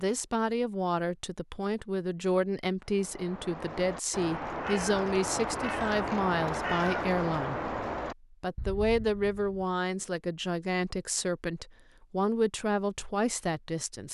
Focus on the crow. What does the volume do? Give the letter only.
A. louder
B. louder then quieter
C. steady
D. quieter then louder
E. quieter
B.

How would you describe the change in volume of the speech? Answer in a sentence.
The volume of the speech stays about the same.